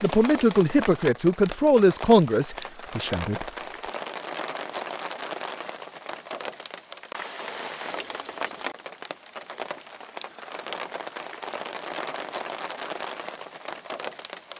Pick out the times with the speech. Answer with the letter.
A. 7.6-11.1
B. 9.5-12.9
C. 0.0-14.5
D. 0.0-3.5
D.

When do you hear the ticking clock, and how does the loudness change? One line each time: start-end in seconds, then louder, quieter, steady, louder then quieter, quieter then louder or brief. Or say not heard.
not heard.